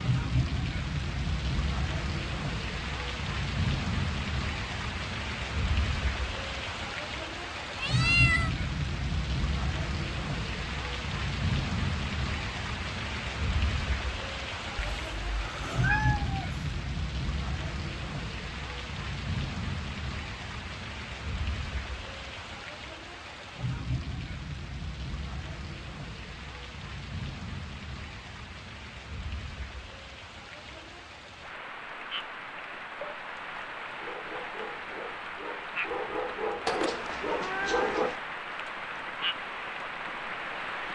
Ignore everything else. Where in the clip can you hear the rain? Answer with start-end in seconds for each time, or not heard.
0.0-40.9.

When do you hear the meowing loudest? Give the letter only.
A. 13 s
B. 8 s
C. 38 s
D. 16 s
B.